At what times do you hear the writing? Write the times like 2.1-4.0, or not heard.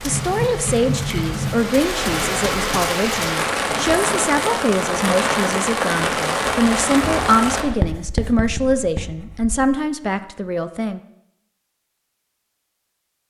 7.6-9.7.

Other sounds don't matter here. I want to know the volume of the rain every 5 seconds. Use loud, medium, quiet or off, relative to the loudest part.
loud, loud, off.